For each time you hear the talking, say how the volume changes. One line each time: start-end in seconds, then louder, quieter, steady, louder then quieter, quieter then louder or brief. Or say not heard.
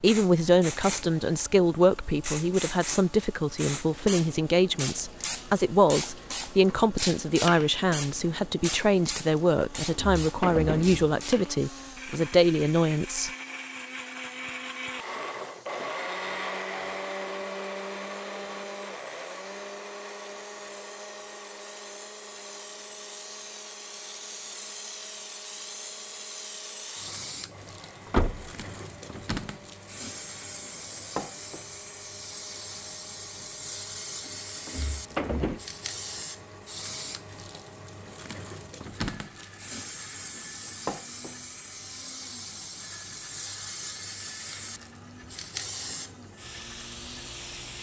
0.0-13.3 steady.